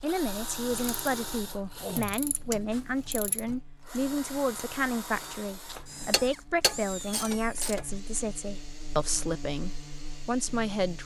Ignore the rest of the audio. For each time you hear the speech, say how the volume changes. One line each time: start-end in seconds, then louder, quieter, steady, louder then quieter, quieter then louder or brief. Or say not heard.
0.0-11.0 steady.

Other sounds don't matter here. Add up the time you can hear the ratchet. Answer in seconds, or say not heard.
5 s.